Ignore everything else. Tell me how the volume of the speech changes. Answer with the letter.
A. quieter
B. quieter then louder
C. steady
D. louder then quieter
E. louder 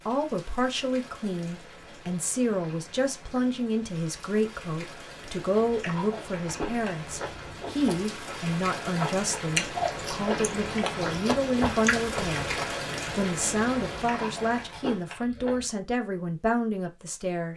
C.